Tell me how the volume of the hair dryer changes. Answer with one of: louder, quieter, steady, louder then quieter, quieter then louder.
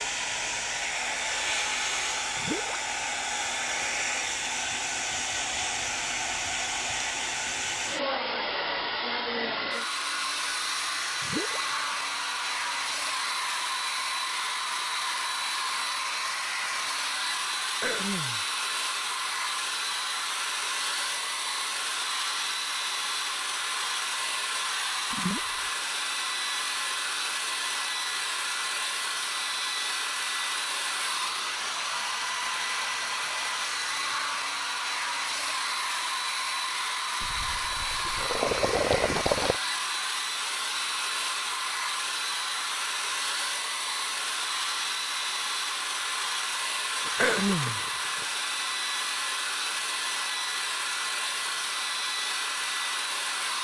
steady.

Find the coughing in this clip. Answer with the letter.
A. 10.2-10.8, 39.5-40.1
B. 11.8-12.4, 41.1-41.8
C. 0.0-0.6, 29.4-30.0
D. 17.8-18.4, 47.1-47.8
D.